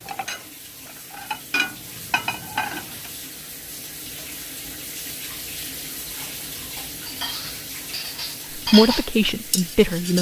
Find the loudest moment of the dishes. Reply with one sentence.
The volume of the dishes peaks at 9 seconds.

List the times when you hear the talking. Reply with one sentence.
The talking can be heard from 8.6 to 10.1 s.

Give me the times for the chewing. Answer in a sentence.
You can't hear the chewing here.